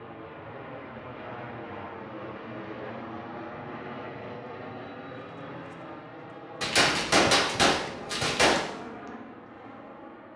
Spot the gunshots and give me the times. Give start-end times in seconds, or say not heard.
6.6-8.6.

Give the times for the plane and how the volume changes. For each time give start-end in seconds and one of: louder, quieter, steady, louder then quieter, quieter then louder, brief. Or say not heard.
0.0-10.3 steady.